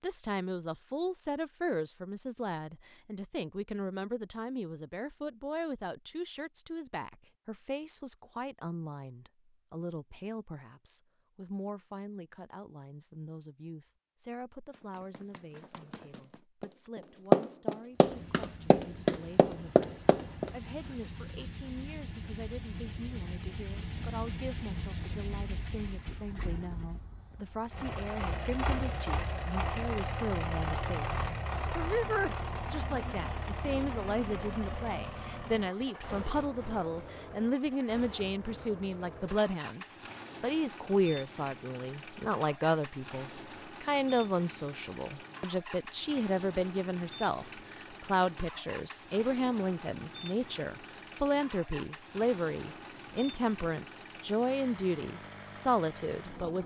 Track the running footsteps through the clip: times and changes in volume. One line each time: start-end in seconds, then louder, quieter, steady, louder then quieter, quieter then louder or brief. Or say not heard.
14.7-20.5 louder then quieter.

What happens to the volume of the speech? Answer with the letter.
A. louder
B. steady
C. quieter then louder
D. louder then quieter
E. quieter
C.